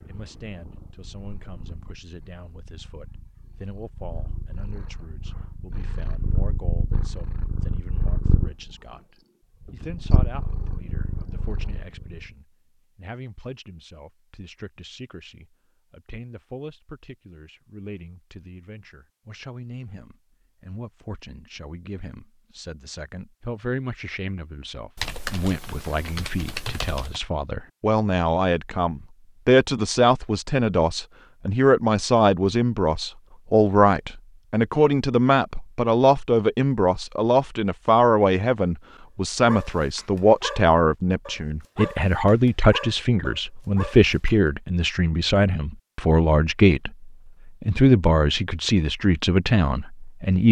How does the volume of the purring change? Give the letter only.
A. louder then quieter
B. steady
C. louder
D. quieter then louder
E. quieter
C.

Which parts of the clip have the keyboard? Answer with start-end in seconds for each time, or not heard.
24.9-27.2.